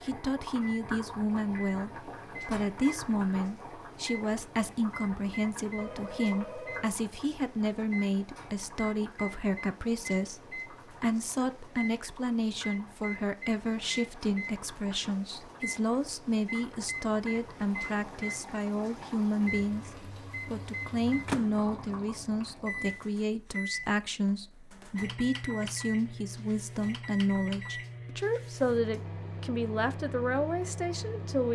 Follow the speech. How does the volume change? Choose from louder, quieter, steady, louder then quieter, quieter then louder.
steady.